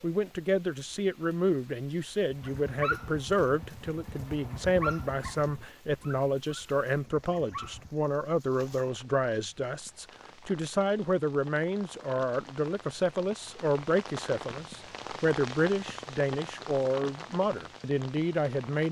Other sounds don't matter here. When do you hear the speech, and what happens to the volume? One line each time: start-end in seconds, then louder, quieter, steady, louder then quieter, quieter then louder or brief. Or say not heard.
0.0-18.8 steady.